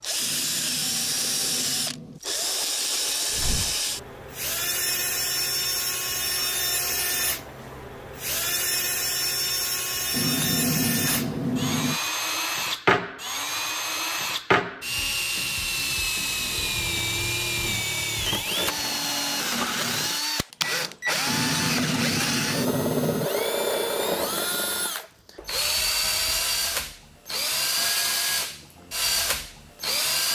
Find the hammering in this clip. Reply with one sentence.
The hammering can be heard from 0.1 to 2.2 s, from 10.1 to 12.0 s and from 21.2 to 23.3 s.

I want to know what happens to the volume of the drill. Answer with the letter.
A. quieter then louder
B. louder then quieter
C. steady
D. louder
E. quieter
C.